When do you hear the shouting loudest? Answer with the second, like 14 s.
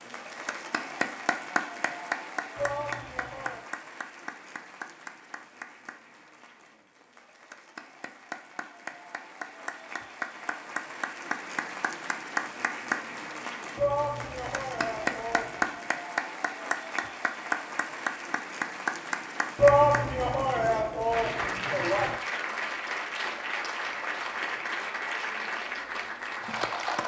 20 s.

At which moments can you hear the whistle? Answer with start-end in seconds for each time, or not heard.
not heard.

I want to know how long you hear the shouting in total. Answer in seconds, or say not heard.
6 s.